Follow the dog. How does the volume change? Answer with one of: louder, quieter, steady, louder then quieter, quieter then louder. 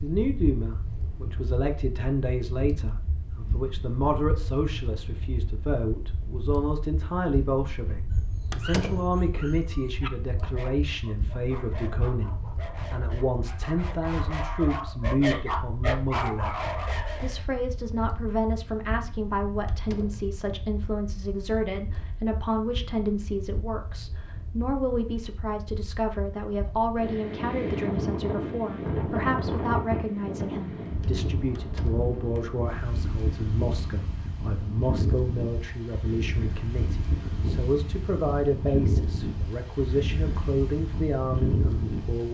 louder.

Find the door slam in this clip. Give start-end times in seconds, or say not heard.
8.5-9.2, 19.6-20.3, 31.6-32.1.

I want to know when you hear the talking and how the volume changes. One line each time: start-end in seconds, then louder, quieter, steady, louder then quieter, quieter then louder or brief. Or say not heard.
0.0-42.2 steady.